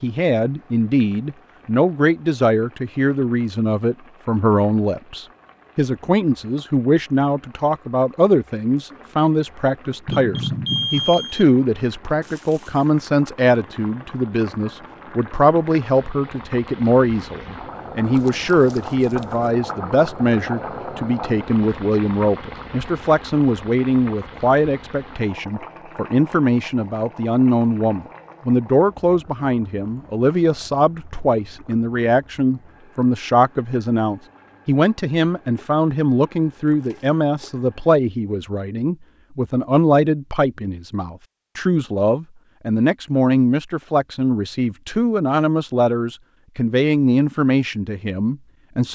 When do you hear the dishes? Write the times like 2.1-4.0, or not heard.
not heard.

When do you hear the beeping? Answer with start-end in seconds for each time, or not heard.
10.1-11.4.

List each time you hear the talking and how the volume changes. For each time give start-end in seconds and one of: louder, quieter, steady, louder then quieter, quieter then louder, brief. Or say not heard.
0.0-48.8 steady.